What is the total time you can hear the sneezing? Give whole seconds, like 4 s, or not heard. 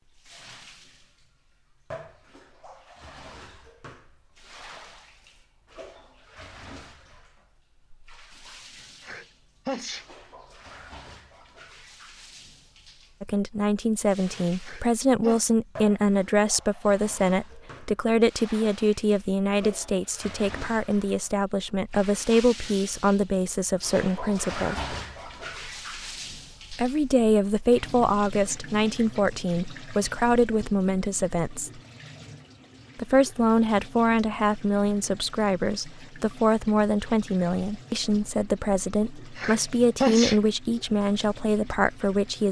3 s.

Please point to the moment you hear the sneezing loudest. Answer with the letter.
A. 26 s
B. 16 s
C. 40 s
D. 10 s
C.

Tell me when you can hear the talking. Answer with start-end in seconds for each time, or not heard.
13.2-24.9, 26.7-31.8, 33.0-42.4.